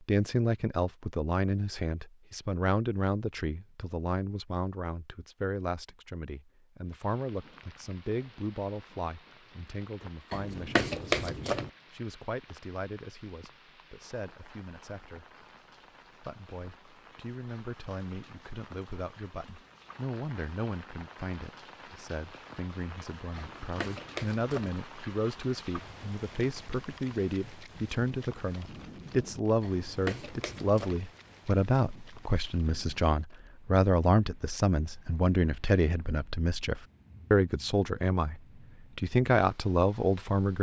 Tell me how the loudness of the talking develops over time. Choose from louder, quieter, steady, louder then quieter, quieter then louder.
quieter then louder.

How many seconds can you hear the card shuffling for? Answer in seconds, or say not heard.
4 s.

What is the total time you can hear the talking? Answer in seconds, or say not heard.
40 s.